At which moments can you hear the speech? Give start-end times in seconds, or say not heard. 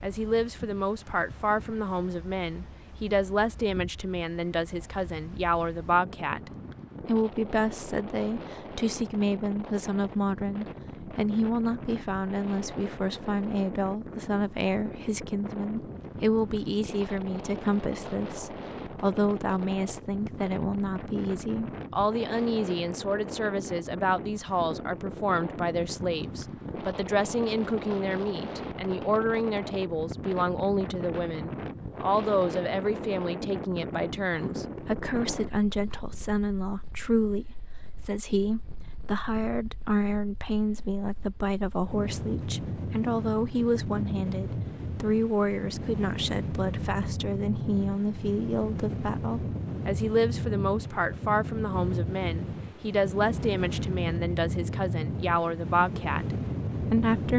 0.0-57.3.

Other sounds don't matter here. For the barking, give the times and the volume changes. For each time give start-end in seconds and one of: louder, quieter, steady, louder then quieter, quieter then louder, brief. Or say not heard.
not heard.